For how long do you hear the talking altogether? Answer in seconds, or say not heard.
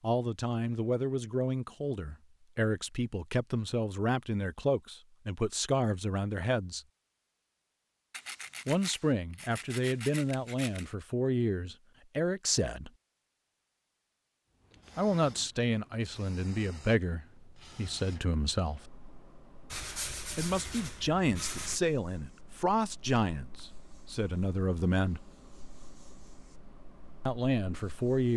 21 s.